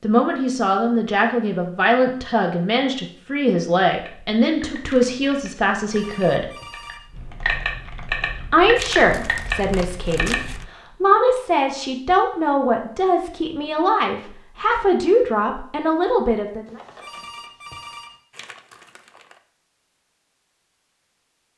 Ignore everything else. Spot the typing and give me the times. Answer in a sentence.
The typing can be heard from 3.9 to 10.7 s.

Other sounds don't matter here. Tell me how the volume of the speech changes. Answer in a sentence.
The loudness of the speech stays about the same.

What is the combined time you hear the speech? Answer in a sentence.
The speech can be heard for 15 seconds in total.